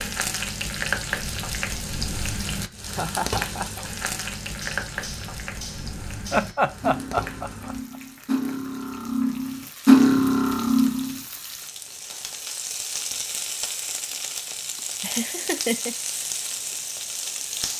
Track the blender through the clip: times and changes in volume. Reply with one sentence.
The blender can't be heard in this clip.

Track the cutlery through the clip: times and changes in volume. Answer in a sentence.
You can hear the cutlery from 4.4 to 11.2 s, getting louder.